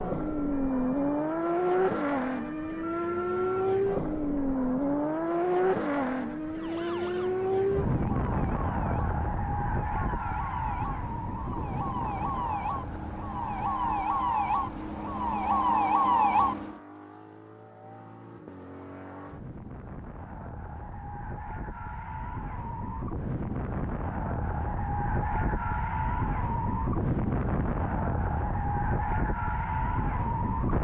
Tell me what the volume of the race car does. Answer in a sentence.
The volume of the race car goes down, then up.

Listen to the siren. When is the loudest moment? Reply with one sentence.
The loudest moment of the siren is at 16 seconds.